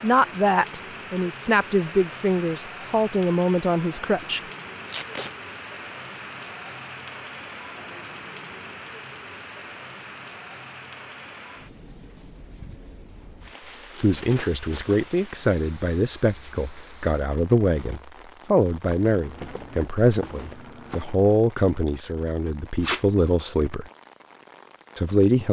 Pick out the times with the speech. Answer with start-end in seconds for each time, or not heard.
0.0-4.4, 14.0-23.9, 24.9-25.4.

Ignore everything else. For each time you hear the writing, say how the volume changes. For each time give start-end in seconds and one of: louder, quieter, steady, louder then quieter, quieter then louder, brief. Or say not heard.
not heard.